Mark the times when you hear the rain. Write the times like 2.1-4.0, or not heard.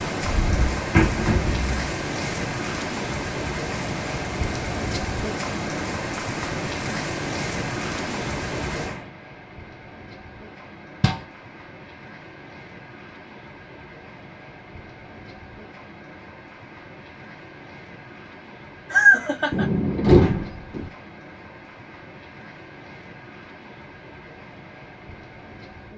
0.0-25.9.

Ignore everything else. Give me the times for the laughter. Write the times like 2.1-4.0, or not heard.
18.9-19.6.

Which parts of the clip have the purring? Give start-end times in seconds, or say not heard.
not heard.